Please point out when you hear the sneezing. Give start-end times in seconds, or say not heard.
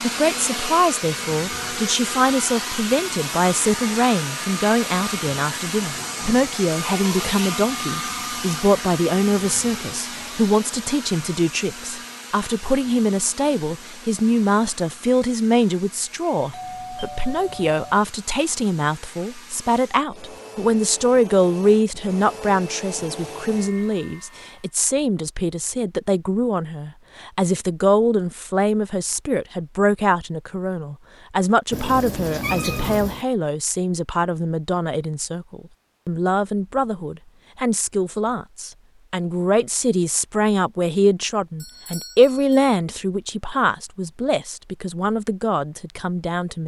not heard.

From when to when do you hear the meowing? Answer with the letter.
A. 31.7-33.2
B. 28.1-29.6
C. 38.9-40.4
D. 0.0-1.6
A.